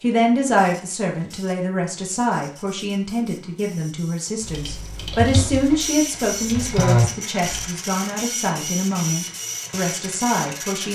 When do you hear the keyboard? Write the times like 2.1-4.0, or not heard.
4.4-7.7.